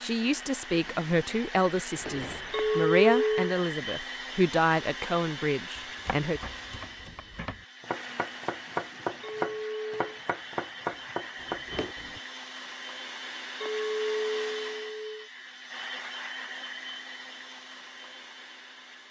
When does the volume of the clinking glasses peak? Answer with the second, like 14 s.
3 s.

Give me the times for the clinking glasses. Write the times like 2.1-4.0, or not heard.
2.5-3.5, 9.2-10.1, 13.6-15.2.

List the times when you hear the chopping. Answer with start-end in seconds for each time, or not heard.
5.8-12.2.